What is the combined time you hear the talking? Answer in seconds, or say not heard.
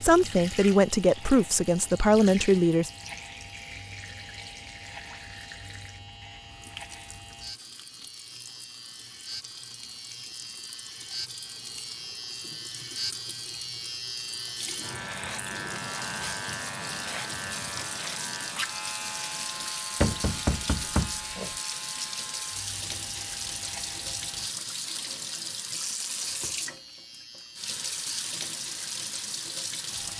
3 s.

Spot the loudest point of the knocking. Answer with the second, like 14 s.
20 s.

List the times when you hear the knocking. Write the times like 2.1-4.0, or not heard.
20.0-21.6.